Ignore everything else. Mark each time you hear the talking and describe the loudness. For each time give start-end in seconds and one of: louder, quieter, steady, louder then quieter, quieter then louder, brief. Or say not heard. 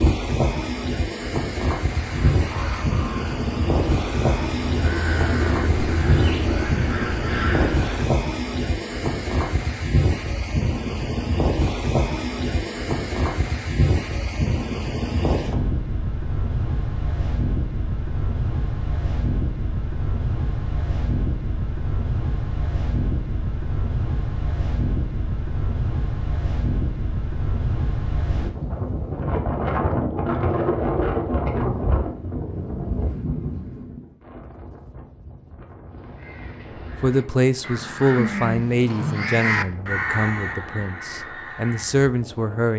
37.0-42.7 quieter then louder.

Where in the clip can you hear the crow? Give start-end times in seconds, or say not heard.
1.9-8.1, 35.9-42.1.